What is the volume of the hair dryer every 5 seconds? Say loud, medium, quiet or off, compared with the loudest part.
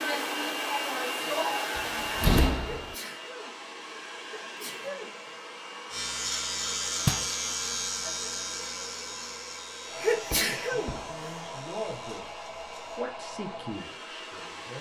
loud, medium, medium.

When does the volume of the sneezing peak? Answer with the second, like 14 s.
10 s.